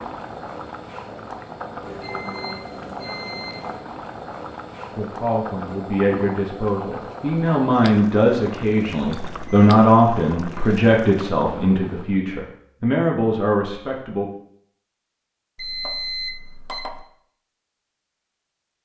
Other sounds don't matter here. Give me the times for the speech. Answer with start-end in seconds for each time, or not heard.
5.0-14.3.